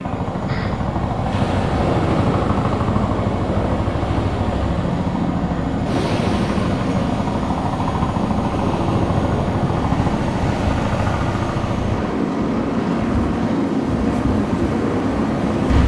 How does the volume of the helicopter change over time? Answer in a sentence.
The volume of the helicopter stays about the same.